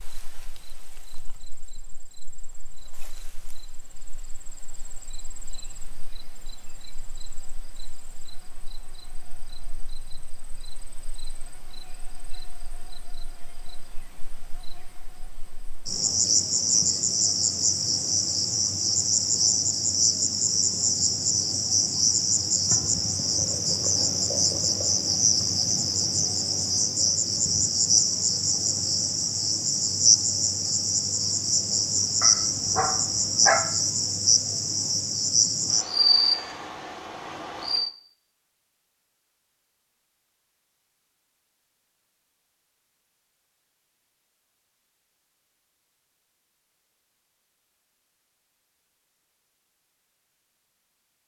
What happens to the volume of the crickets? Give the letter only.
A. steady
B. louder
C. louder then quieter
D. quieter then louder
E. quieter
B.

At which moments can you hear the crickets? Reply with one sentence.
The crickets can be heard from 0.0 to 37.9 s.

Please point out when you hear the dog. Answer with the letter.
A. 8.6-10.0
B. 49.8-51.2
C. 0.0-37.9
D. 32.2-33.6
D.